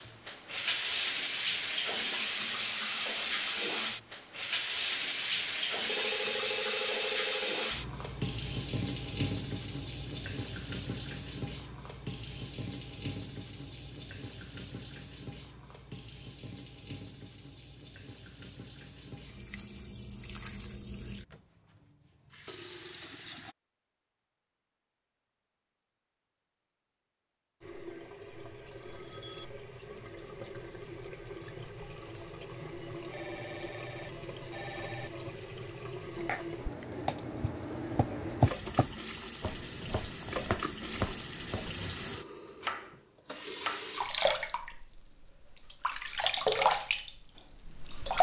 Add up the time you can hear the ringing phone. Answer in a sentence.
You can hear the ringing phone for 5 seconds altogether.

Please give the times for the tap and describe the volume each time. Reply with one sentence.
You can hear the tap from 0.0 to 23.6 s, getting quieter; and from 27.6 to 48.1 s, getting louder.